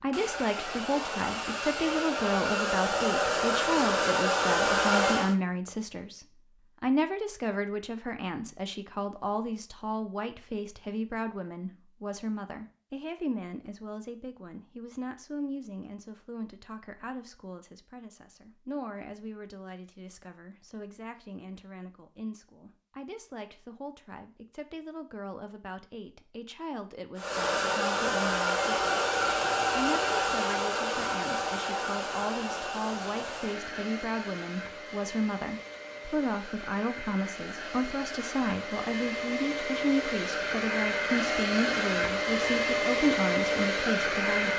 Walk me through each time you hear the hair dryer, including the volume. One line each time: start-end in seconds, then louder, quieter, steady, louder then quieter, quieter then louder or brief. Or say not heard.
0.0-5.3 louder
27.1-44.5 quieter then louder.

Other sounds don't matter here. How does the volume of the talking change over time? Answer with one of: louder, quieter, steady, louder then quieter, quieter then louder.
quieter then louder.